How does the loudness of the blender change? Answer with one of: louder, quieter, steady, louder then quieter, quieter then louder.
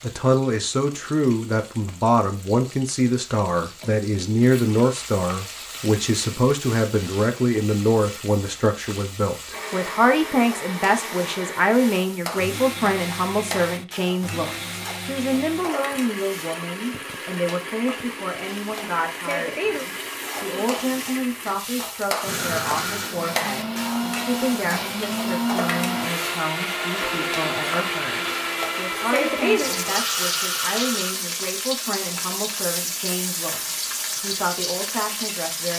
louder.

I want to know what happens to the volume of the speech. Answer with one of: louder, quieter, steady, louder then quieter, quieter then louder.
quieter.